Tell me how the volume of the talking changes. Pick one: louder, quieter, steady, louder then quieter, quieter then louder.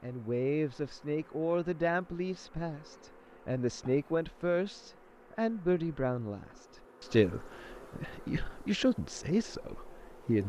steady.